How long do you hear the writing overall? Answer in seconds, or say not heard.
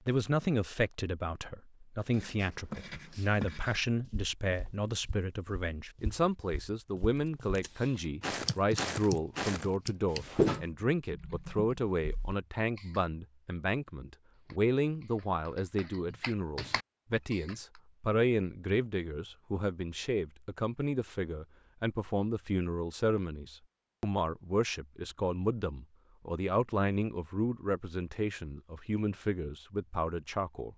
2 s.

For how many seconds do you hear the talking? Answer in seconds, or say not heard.
31 s.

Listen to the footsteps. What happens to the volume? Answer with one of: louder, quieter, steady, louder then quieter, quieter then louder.
louder.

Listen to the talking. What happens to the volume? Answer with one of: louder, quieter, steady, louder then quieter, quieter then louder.
steady.